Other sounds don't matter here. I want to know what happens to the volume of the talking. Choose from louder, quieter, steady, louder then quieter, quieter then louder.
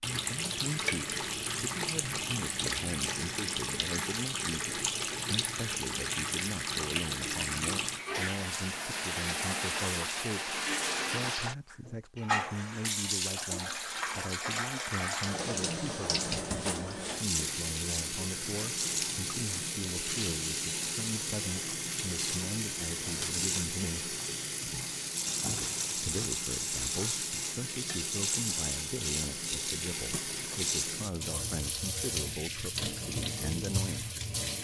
steady.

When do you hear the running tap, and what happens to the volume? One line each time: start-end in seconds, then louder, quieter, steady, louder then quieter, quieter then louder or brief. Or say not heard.
0.0-34.5 steady.